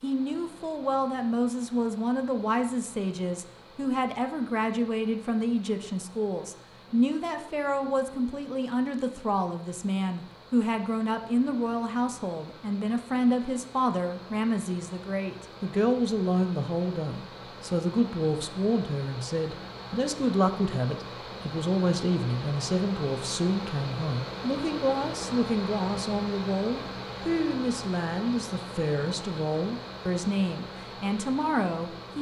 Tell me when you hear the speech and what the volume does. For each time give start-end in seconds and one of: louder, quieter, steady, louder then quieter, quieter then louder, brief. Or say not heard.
0.0-32.1 steady.